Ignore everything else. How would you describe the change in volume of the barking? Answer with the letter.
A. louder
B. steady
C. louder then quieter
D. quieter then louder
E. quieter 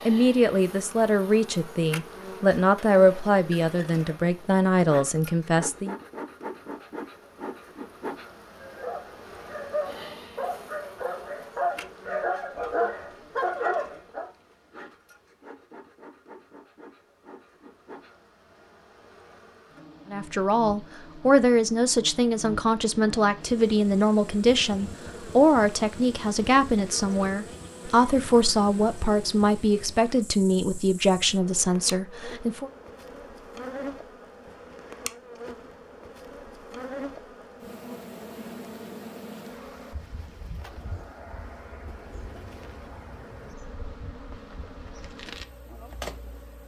A.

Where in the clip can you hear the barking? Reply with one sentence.
The barking can be heard from 8.6 to 14.3 s.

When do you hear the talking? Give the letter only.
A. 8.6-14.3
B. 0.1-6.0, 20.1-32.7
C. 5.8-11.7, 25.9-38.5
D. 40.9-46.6
B.